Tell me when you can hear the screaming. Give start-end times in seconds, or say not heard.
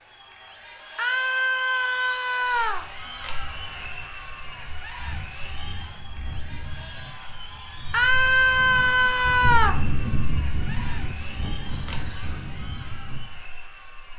0.9-2.9, 7.9-9.8.